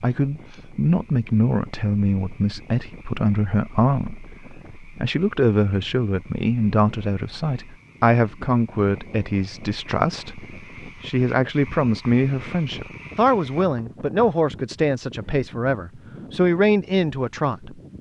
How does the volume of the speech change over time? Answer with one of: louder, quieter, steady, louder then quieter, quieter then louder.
steady.